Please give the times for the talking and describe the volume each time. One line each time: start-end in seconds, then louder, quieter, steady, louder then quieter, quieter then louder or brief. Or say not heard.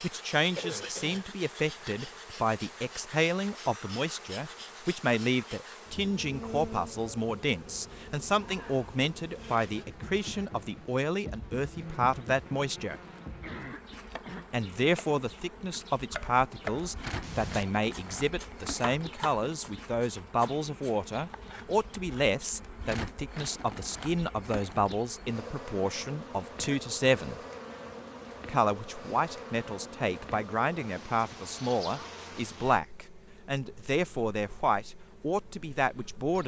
0.0-13.0 steady
14.5-27.4 steady
28.5-36.4 steady.